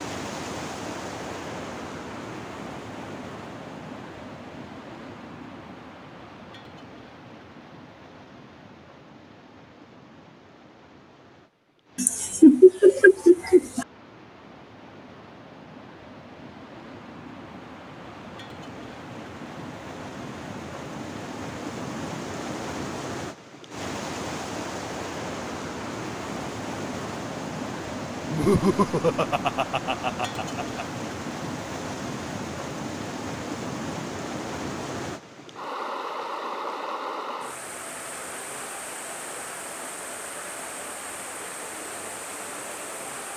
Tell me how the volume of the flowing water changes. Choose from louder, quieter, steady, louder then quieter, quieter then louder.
quieter then louder.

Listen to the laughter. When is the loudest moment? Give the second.
13 s.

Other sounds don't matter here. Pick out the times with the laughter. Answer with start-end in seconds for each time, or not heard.
11.9-13.8, 28.3-30.8.